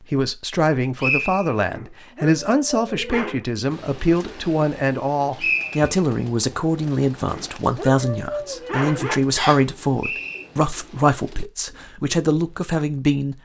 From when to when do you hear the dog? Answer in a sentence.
The dog can be heard from 1.7 to 3.5 s and from 7.3 to 9.2 s.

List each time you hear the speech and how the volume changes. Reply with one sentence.
You can hear the speech from 0.0 to 13.4 s, at a steady volume.